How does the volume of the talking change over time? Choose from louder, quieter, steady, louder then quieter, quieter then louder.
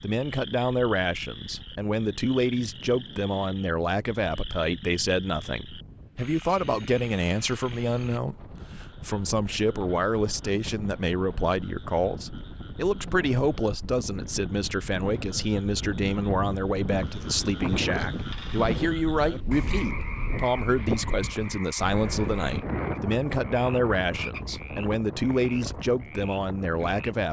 steady.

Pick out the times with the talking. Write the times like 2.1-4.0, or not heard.
0.0-27.2.